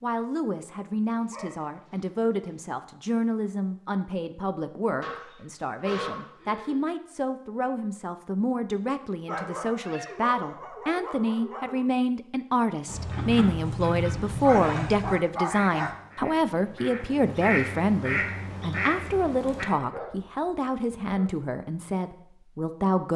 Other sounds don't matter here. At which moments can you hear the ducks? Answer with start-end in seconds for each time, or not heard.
12.8-19.6.